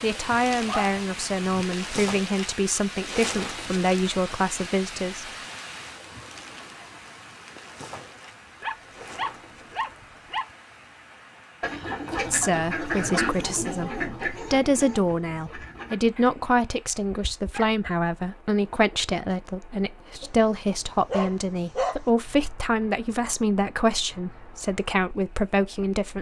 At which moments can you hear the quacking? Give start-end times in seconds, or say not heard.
11.6-15.9.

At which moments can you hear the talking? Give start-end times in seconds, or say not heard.
0.0-5.2, 12.3-26.1.